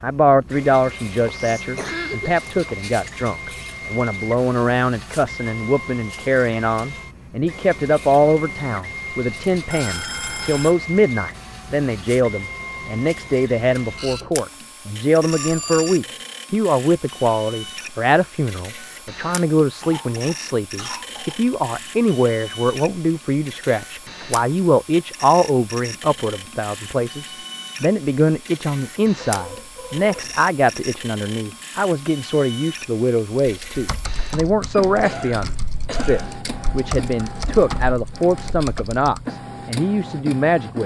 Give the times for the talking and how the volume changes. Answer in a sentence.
The talking can be heard from 0.0 to 40.8 s, at a steady volume.